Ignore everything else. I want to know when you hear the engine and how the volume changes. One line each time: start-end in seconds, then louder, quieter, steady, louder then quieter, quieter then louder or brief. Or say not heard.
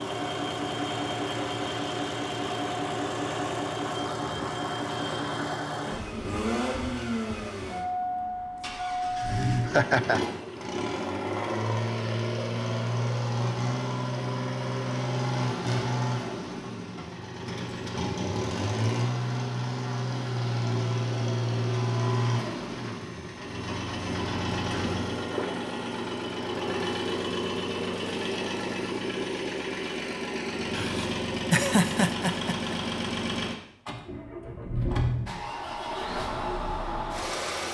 0.0-37.6 steady.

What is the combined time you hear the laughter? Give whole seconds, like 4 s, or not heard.
3 s.